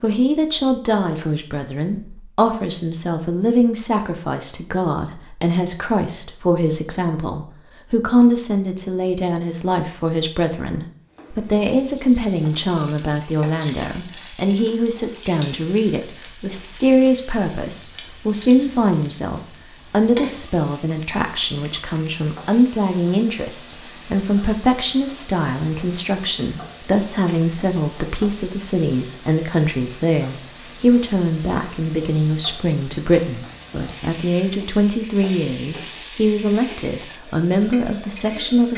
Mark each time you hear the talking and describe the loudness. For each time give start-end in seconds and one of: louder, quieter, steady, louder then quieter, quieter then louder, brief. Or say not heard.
0.0-38.7 steady.